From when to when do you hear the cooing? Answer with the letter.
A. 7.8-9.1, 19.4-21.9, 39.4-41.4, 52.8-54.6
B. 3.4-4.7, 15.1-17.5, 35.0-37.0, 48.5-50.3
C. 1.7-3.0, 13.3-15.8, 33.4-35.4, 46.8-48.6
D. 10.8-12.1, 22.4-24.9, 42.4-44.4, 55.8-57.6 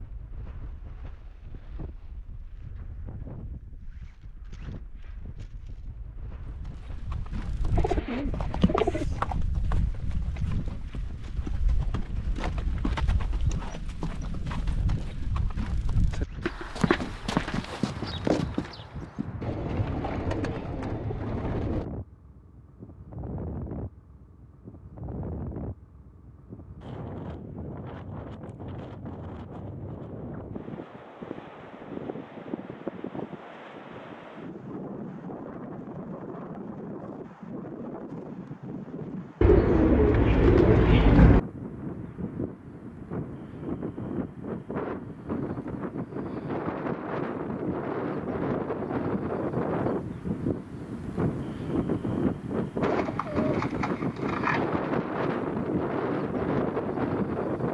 A.